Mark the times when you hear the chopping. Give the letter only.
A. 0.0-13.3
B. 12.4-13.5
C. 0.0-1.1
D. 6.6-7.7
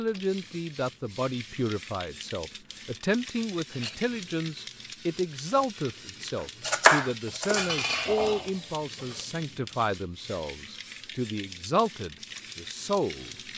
D.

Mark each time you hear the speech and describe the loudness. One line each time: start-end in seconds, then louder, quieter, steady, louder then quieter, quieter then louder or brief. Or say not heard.
0.0-13.3 steady.